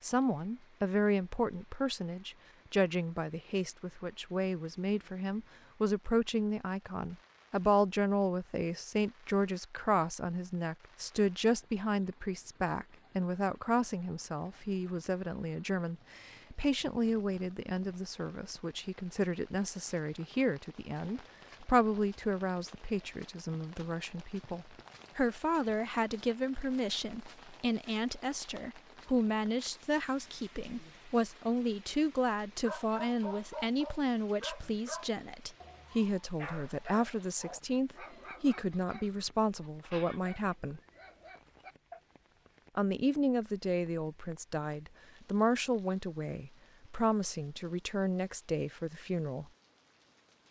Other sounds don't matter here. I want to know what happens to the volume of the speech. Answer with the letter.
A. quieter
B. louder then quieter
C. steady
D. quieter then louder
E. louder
C.